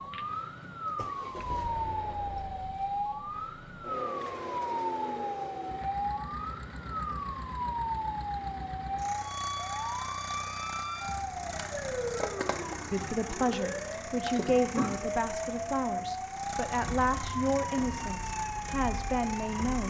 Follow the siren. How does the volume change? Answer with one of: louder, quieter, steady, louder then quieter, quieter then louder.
steady.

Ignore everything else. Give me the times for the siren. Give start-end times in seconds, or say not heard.
0.0-19.8.